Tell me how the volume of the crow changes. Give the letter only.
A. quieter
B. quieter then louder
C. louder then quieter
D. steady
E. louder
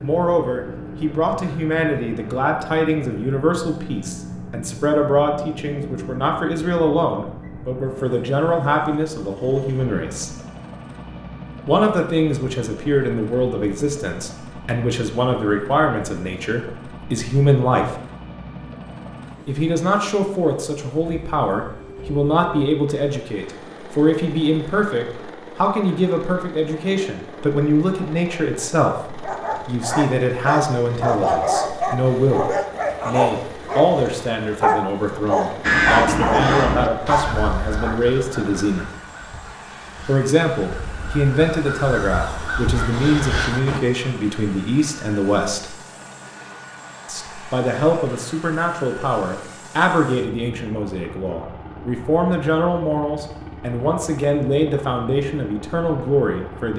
B.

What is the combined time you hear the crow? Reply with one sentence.
You can hear the crow for 8 seconds altogether.